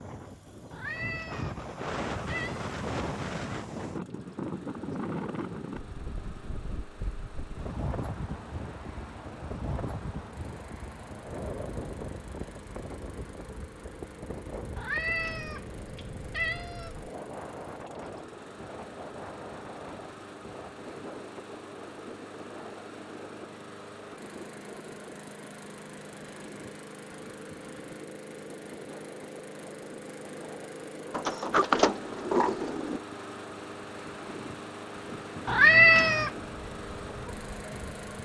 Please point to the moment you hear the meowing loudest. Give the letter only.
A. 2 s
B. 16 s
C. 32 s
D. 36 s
D.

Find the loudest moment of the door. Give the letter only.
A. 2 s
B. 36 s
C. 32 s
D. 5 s
C.